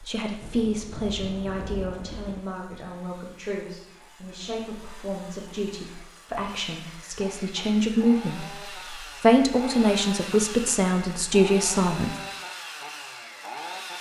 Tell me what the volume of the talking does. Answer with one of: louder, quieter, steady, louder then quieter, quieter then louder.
quieter then louder.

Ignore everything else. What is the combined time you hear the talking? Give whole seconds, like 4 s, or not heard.
12 s.